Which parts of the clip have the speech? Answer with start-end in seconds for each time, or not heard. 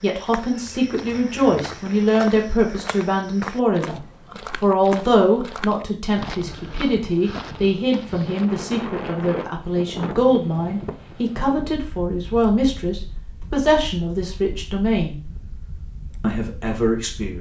0.0-4.0, 4.6-15.2, 16.2-17.3.